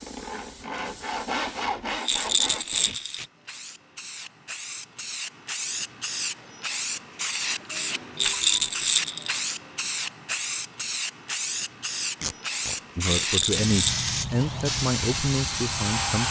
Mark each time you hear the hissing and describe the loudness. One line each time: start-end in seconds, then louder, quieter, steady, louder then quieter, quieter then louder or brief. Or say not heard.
0.0-16.2 louder.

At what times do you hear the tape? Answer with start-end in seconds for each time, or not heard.
2.0-3.3, 12.2-13.2.